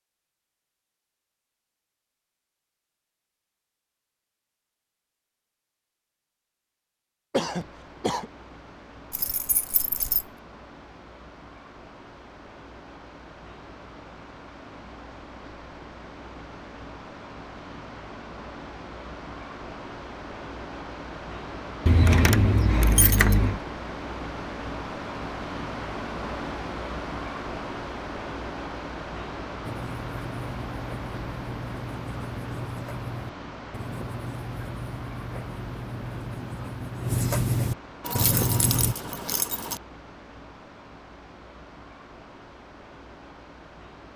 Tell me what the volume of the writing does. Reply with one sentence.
The loudness of the writing goes up.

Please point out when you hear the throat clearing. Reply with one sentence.
The throat clearing can be heard from 7.3 to 8.3 s.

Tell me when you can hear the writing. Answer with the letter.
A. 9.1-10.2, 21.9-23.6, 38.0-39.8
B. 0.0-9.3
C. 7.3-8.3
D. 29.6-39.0
D.